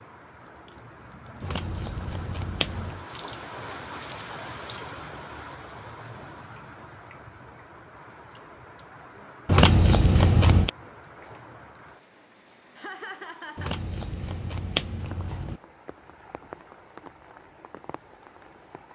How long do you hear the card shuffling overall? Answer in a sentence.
The card shuffling can be heard for 5 seconds in total.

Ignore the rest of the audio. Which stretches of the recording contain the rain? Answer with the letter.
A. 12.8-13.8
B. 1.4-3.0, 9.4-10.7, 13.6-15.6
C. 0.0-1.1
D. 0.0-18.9
D.